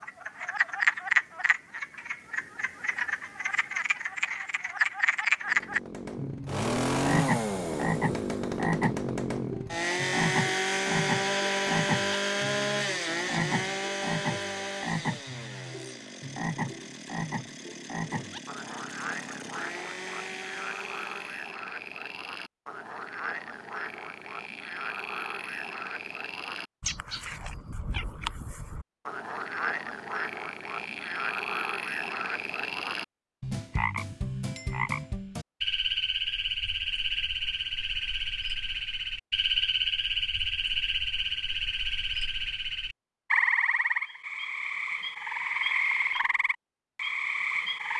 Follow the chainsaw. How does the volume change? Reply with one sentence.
The volume of the chainsaw goes down.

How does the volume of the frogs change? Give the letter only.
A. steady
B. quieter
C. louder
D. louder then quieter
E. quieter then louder
E.